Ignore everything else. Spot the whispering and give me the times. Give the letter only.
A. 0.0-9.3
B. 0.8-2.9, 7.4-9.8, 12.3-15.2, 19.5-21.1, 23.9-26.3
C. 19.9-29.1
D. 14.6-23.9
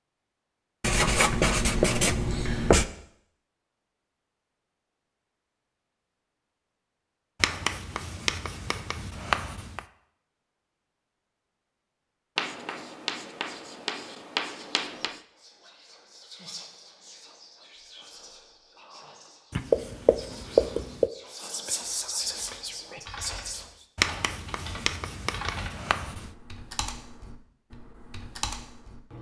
D.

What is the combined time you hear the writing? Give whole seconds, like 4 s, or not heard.
11 s.